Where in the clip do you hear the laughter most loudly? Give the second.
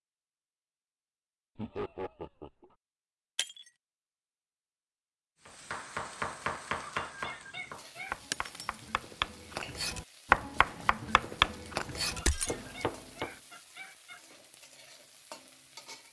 2 s.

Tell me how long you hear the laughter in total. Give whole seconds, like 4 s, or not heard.
5 s.